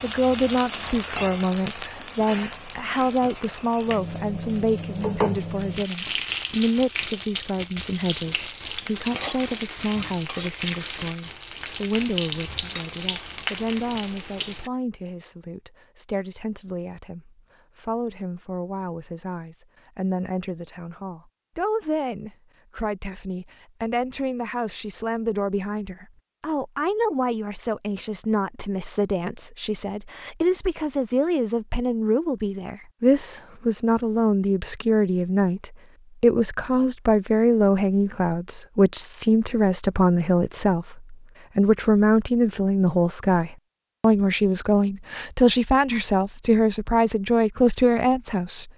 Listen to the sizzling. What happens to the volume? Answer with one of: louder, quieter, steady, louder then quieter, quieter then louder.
steady.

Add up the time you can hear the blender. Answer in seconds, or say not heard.
not heard.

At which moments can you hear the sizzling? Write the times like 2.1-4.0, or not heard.
0.0-14.7.